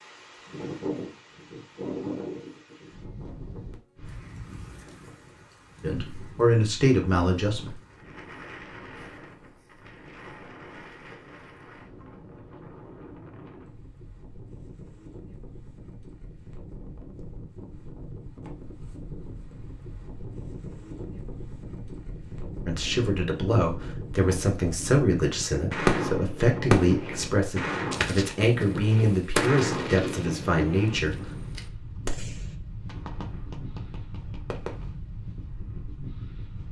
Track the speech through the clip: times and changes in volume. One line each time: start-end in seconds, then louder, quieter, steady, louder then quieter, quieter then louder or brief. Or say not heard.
5.8-7.8 brief
22.6-31.1 steady.